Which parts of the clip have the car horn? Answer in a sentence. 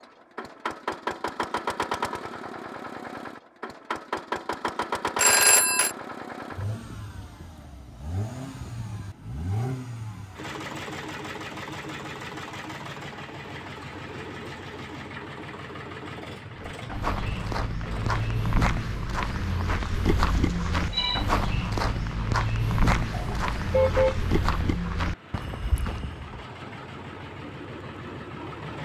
You can hear the car horn from 23.1 to 24.1 s.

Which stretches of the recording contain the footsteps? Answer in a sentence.
The footsteps can be heard from 16.6 to 26.4 s.